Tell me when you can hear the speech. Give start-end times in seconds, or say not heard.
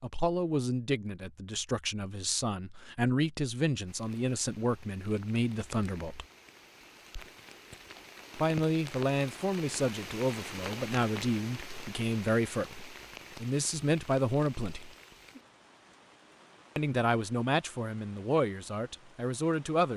0.0-6.2, 8.3-14.9, 16.8-19.9.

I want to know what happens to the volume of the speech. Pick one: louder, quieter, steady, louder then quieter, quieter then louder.
steady.